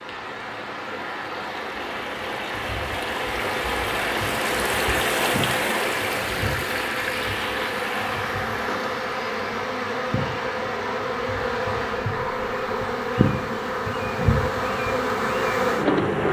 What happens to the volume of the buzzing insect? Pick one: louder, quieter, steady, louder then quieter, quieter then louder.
louder.